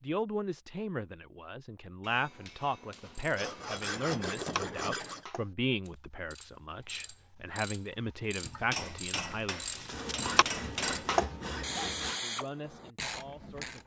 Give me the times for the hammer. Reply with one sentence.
The hammer can be heard from 2.0 to 3.8 s and from 8.4 to 11.2 s.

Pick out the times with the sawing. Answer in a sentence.
The sawing can be heard from 3.4 to 5.2 s and from 9.9 to 12.2 s.